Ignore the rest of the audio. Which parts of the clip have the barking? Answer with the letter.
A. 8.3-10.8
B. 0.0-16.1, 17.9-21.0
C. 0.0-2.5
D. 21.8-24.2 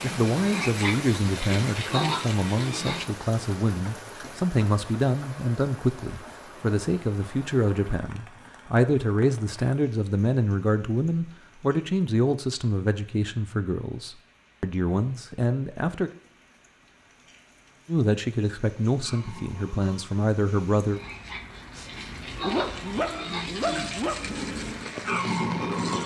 D.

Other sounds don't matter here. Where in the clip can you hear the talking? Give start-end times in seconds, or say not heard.
0.0-16.1, 17.9-21.0.